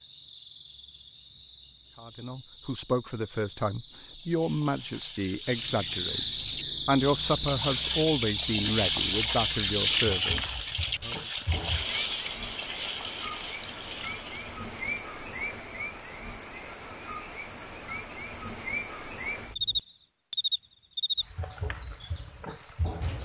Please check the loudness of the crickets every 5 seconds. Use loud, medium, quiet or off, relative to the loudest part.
quiet, loud, loud, loud, loud.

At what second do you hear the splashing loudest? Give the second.
10 s.